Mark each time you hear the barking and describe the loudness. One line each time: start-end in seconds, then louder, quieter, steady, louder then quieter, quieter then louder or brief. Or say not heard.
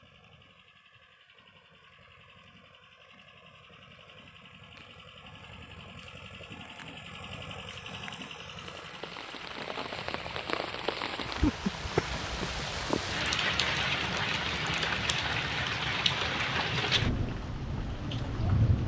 not heard.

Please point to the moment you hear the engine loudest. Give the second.
8 s.